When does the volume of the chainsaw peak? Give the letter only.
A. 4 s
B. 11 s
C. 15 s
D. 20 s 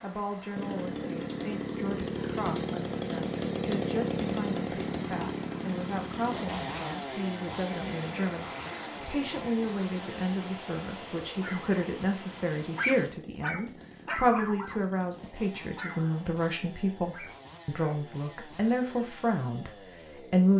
A.